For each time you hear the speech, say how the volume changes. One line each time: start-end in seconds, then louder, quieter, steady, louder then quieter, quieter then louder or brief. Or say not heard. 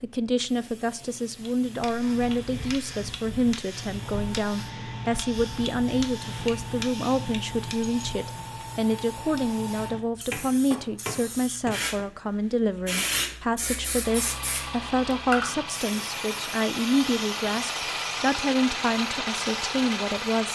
0.0-20.5 steady.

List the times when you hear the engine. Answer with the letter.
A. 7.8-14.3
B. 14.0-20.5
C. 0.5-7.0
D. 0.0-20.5
B.